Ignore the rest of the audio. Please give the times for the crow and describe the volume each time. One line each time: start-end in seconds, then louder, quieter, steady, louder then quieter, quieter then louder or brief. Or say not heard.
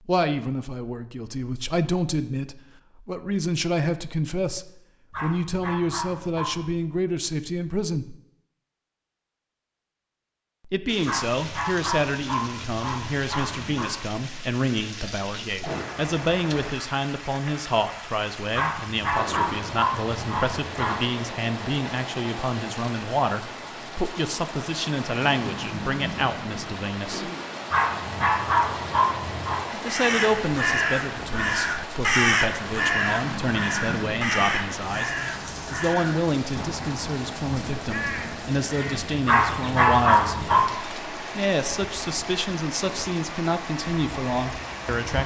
29.9-39.9 quieter.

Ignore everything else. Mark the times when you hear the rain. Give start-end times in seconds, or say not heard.
10.8-45.2.